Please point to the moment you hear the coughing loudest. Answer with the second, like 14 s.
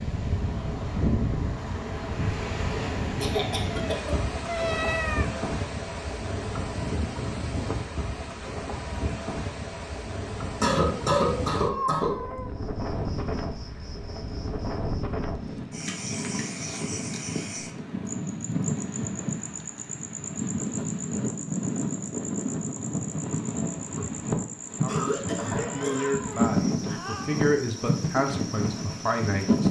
11 s.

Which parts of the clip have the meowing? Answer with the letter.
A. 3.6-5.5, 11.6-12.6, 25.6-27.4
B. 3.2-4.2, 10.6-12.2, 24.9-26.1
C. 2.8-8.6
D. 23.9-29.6
A.